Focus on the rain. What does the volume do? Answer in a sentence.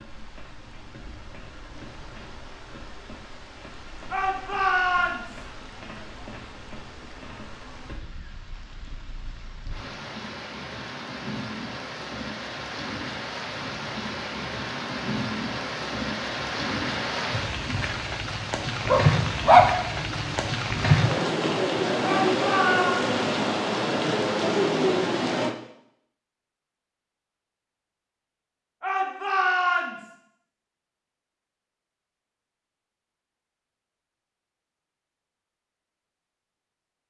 The loudness of the rain goes up.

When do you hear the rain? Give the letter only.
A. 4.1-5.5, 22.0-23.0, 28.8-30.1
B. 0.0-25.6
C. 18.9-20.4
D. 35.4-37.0
B.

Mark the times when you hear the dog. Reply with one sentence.
The dog can be heard from 18.9 to 20.4 s.